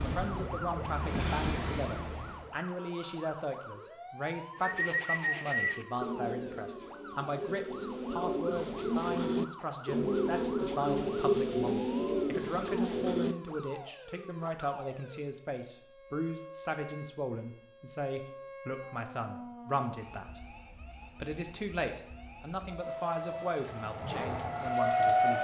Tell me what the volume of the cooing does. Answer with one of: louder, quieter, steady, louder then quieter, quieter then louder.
quieter then louder.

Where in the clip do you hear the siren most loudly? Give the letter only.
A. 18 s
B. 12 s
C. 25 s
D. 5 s
C.